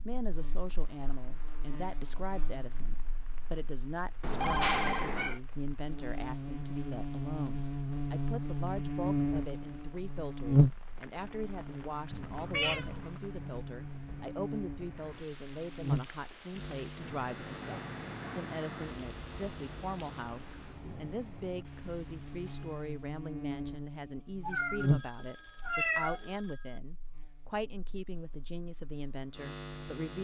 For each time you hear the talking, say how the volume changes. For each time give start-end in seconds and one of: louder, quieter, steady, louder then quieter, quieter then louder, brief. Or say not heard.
0.1-30.1 steady.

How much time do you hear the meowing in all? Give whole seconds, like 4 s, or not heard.
3 s.